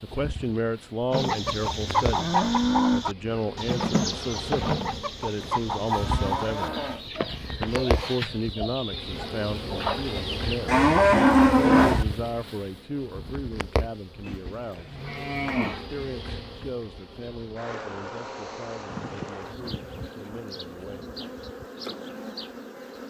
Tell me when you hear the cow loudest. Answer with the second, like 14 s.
11 s.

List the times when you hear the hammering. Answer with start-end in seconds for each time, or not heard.
not heard.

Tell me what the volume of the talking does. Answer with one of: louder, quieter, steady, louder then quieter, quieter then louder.
quieter.